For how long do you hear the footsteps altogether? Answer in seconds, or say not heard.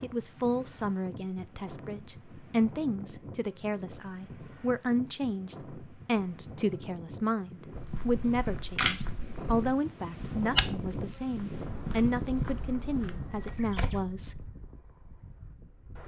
6 s.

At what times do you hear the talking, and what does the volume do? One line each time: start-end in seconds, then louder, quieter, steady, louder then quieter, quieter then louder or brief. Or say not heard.
0.0-14.5 steady.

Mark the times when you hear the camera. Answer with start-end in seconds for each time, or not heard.
8.2-8.9.